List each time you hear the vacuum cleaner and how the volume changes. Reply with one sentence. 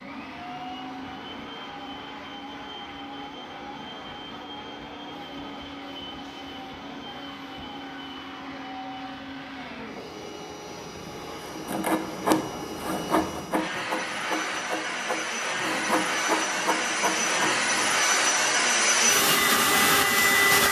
The vacuum cleaner can be heard from 0.0 to 20.6 s, getting louder.